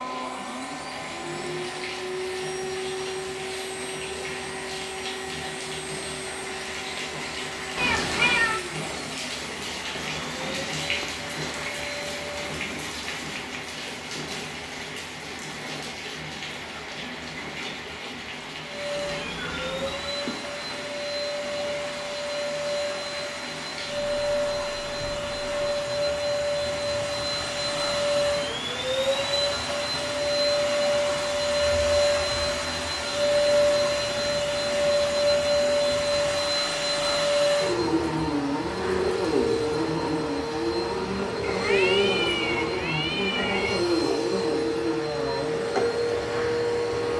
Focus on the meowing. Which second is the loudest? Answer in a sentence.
The loudest moment of the meowing is at 8 seconds.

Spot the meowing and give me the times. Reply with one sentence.
The meowing can be heard from 7.8 to 8.6 s, from 18.9 to 20.1 s and from 41.4 to 43.9 s.